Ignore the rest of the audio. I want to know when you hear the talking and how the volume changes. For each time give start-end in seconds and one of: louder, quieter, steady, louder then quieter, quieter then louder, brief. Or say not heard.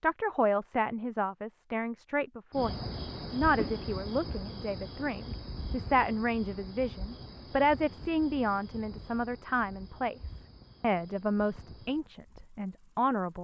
0.0-10.2 steady
10.8-13.3 brief.